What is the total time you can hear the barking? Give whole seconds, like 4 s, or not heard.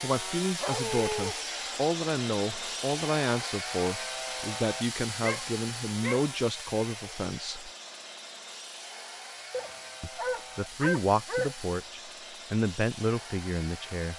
4 s.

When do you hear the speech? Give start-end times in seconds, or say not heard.
0.0-7.7, 10.0-14.1.